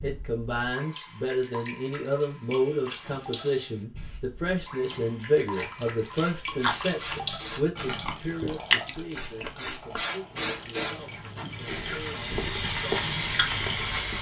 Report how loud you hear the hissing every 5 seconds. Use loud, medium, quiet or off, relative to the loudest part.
quiet, medium, loud.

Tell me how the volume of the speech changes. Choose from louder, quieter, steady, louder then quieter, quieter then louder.
quieter.